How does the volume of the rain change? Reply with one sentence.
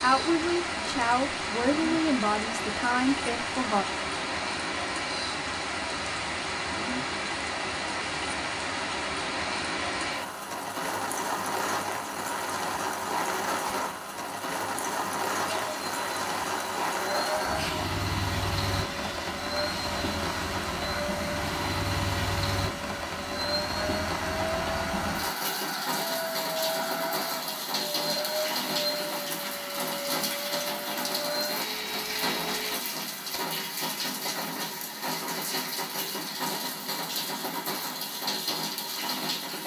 The volume of the rain stays about the same.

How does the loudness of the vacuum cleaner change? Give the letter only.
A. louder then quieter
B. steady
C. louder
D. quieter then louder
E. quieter
B.